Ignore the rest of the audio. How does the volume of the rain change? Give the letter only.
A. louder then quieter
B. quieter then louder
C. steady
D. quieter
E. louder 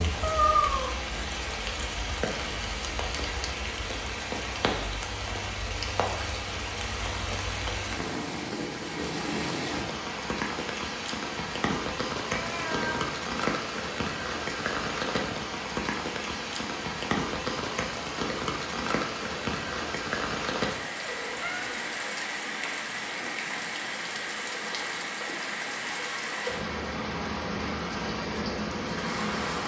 C.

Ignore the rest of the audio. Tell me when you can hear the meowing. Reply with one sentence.
You can hear the meowing from 0.2 to 0.9 s, from 12.3 to 13.1 s and from 21.0 to 21.9 s.